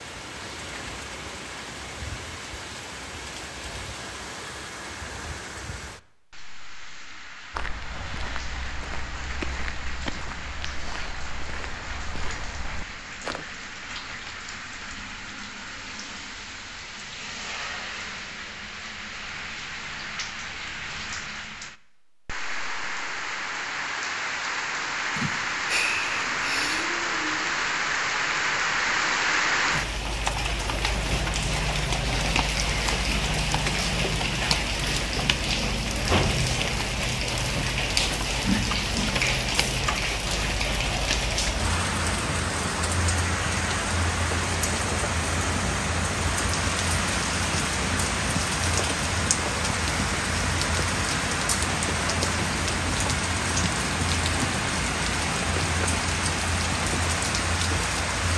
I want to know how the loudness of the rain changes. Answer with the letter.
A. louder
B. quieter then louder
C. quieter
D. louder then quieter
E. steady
A.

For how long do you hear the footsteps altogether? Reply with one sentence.
The footsteps can be heard for 6 seconds in total.